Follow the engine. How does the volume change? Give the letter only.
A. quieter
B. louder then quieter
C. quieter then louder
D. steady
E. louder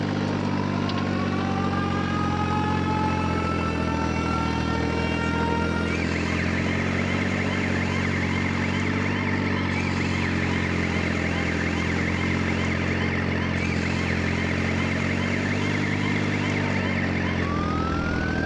D.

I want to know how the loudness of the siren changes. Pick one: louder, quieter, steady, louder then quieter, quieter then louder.
steady.